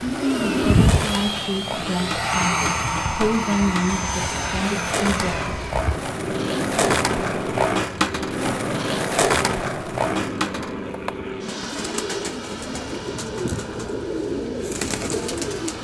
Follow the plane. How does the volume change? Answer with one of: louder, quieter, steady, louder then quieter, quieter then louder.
quieter.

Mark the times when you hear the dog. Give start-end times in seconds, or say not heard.
not heard.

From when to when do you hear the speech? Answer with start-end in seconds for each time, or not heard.
0.0-5.5.